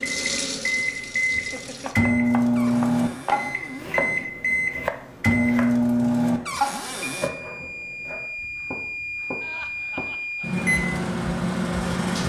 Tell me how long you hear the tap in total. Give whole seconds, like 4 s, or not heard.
2 s.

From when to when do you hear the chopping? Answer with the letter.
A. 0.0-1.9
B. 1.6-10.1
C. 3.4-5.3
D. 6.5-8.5
B.